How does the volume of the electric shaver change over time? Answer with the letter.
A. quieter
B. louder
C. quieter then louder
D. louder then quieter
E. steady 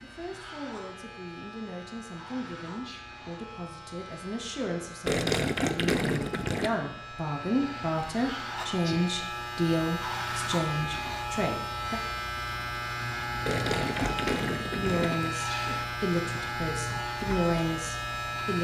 B.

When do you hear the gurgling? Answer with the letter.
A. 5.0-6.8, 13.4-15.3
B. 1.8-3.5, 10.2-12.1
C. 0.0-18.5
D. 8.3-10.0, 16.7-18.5
A.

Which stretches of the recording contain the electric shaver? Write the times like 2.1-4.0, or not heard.
0.0-18.5.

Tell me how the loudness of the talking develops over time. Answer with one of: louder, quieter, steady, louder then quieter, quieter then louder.
louder.